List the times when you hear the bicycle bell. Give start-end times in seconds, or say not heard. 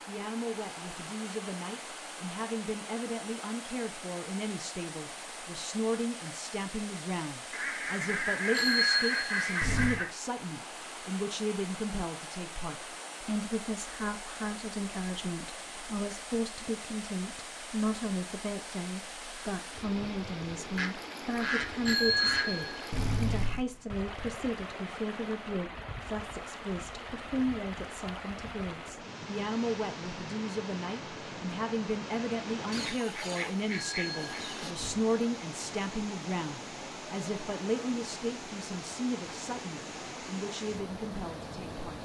8.5-10.0, 21.9-23.6, 33.7-35.0.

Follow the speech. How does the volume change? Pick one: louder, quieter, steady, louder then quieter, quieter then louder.
steady.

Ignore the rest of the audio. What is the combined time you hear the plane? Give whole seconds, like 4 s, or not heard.
not heard.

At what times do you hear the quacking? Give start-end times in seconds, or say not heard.
7.5-10.1, 20.8-22.5, 32.7-34.8.